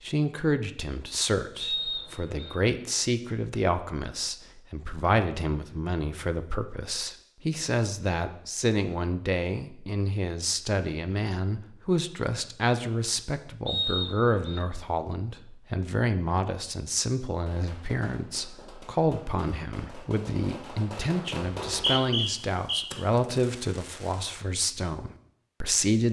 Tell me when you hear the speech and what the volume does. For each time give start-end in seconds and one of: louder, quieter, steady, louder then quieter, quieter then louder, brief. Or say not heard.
0.0-26.0 steady.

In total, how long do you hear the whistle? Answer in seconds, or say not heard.
3 s.